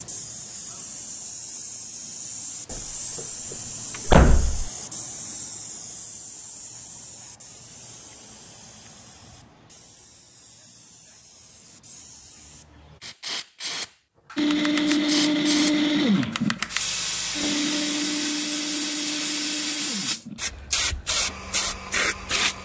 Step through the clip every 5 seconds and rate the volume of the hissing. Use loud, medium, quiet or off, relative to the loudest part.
medium, quiet, medium, loud, loud.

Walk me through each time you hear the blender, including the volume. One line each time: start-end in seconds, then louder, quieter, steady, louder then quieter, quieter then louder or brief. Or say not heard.
14.3-22.6 quieter.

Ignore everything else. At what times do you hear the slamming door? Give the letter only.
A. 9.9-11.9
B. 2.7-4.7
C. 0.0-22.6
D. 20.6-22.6
B.